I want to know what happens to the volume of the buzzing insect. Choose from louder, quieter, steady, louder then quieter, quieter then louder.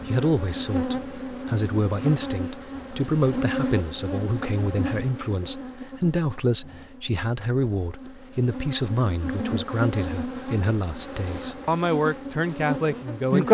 quieter then louder.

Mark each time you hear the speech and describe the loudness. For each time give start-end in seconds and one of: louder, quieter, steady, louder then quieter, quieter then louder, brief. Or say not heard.
0.0-13.4 steady.